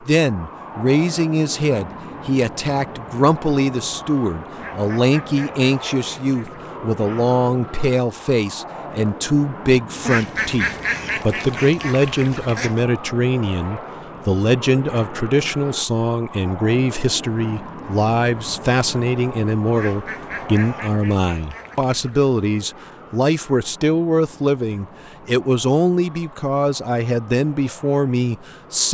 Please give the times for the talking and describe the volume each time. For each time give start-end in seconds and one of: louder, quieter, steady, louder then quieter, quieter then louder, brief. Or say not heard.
0.1-28.9 steady.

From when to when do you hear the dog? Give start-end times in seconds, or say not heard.
not heard.